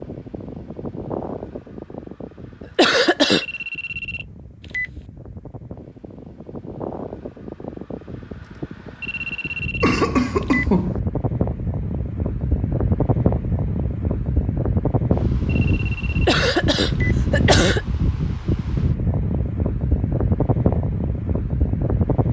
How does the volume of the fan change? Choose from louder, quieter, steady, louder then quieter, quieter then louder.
louder.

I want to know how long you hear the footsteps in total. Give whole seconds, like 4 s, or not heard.
not heard.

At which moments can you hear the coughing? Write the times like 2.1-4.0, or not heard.
2.8-3.5, 9.8-11.0, 16.2-17.9.